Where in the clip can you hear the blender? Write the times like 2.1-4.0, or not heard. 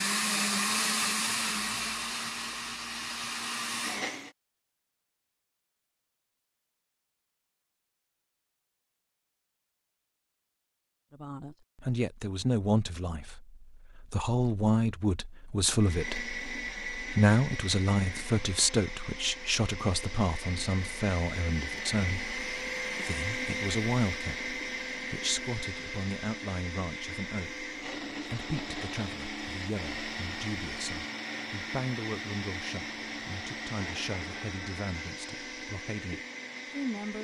0.0-4.3, 15.8-37.1.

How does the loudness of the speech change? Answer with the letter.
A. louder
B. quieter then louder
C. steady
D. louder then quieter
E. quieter
E.